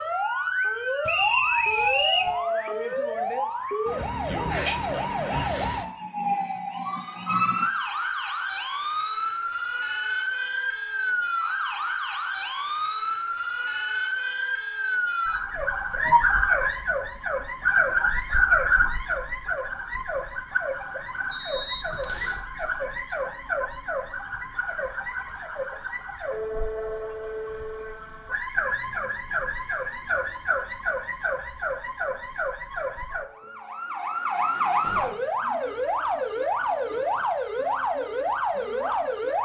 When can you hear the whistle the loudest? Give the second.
2 s.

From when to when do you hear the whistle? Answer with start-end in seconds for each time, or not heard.
1.1-2.4, 21.3-22.4.